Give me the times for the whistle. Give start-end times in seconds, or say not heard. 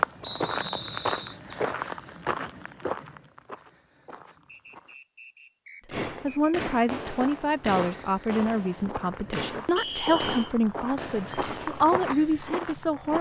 0.2-1.4, 4.5-6.5, 9.8-10.5.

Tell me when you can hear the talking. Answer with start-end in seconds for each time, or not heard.
6.2-13.1.